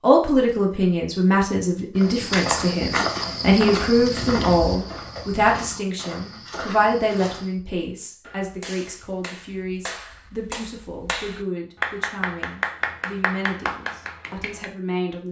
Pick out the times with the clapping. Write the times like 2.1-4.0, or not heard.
8.2-14.7.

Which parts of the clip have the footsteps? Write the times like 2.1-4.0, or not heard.
1.9-7.5.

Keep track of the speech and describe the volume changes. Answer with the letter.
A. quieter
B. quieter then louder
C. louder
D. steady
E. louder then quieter
A.